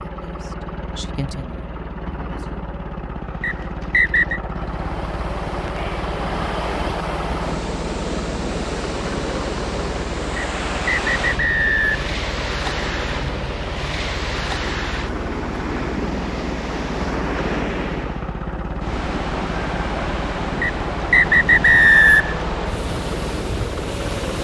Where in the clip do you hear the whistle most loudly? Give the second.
22 s.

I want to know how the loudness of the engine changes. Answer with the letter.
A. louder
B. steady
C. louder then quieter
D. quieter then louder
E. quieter
B.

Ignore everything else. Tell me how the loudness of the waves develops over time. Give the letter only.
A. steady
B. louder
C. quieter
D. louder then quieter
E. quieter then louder
A.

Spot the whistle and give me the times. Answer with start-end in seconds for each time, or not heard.
3.4-4.4, 10.3-12.0, 20.6-22.4.